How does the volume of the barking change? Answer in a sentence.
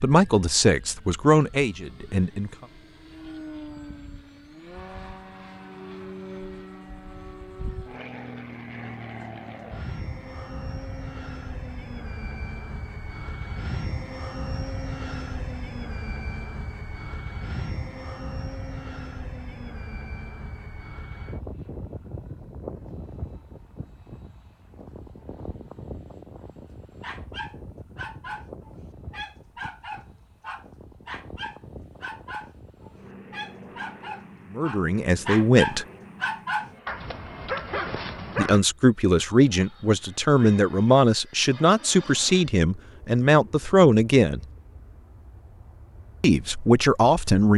The loudness of the barking goes up.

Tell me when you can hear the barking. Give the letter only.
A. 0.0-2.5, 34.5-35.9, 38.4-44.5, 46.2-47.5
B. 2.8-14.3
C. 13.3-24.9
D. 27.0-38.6
D.